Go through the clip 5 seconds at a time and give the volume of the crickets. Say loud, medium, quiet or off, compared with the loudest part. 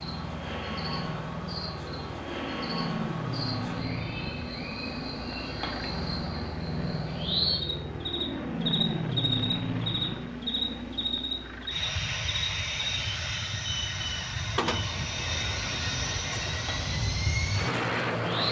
medium, loud, loud, medium.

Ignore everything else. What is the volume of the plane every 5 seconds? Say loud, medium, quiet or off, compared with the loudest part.
medium, loud, loud, loud.